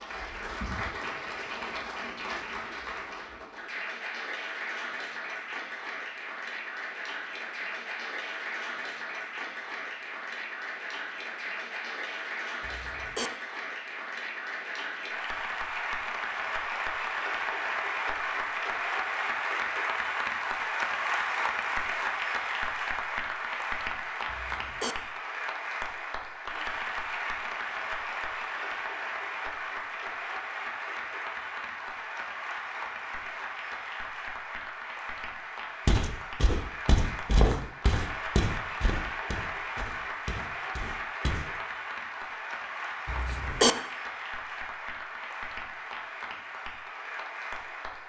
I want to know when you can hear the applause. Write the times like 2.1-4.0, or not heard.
0.0-48.0.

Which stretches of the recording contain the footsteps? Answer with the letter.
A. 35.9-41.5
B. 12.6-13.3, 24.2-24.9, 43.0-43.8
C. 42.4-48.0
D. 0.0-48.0
A.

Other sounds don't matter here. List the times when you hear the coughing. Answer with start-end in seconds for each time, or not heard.
12.6-13.3, 24.2-24.9, 43.0-43.8.